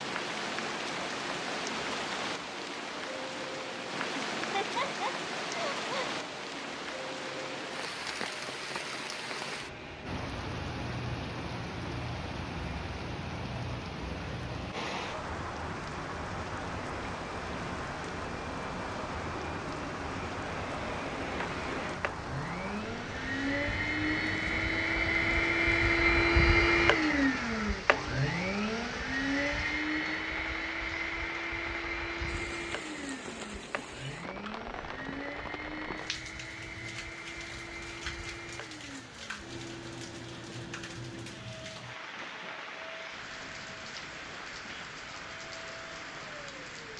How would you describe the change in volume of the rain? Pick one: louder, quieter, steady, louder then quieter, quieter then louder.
quieter.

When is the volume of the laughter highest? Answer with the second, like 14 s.
5 s.